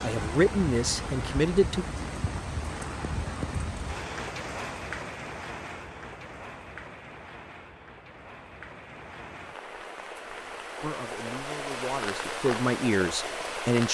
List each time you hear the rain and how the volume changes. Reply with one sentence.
You can hear the rain from 0.0 to 13.9 s, getting quieter then louder.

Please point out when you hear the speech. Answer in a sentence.
You can hear the speech from 0.0 to 1.9 s and from 10.8 to 13.9 s.